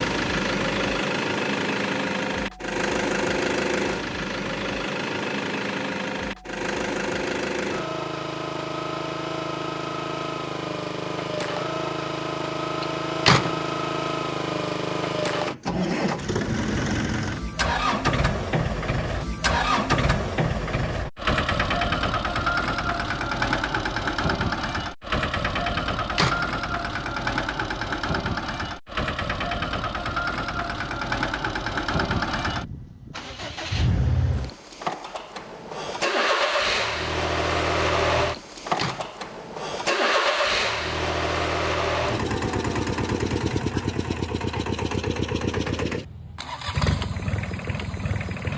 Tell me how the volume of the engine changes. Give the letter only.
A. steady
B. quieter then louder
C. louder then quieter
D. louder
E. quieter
A.